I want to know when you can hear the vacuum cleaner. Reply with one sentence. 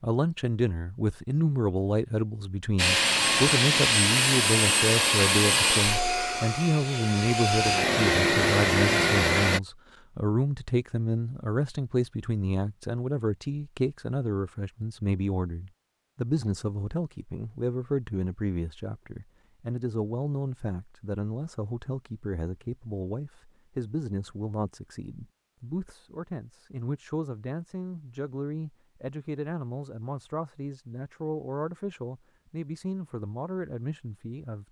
You can hear the vacuum cleaner from 2.8 to 9.6 s.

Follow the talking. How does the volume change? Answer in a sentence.
The loudness of the talking goes down.